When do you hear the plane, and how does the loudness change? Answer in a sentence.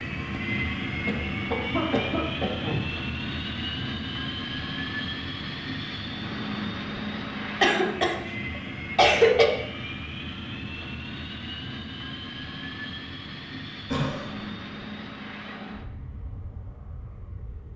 The plane can be heard from 0.0 to 17.7 s, getting quieter.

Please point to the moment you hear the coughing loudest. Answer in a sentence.
The loudest moment of the coughing is at 9 seconds.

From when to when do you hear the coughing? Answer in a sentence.
You can hear the coughing from 1.1 to 2.9 s, from 7.6 to 9.4 s and from 13.9 to 14.4 s.